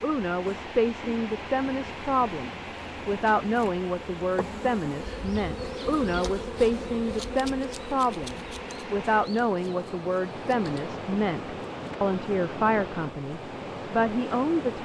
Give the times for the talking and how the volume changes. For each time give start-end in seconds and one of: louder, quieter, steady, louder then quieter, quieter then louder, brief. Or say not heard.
0.0-14.7 steady.